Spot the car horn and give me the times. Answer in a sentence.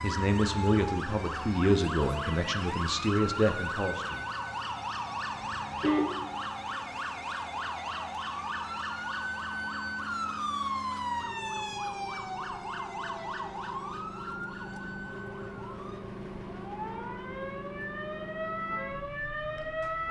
You can hear the car horn from 5.3 to 6.3 s.